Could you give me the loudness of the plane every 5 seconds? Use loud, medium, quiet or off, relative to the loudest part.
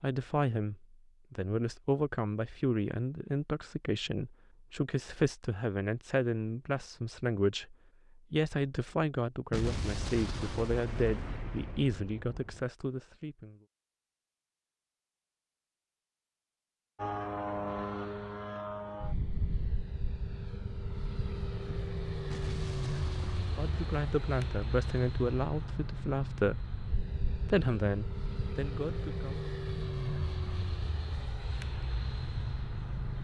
off, off, off, loud, loud, loud, loud.